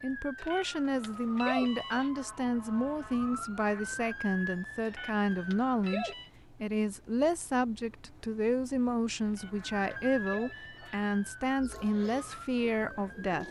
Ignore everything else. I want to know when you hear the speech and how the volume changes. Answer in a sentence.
You can hear the speech from 0.0 to 13.4 s, at a steady volume.